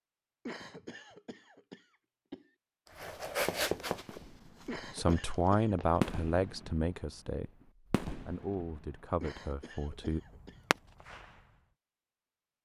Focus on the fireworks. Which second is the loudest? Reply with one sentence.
The loudest moment of the fireworks is at 6 seconds.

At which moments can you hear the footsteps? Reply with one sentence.
The footsteps can be heard from 2.9 to 6.0 s.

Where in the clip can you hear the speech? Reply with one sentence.
You can hear the speech from 5.0 to 10.2 s.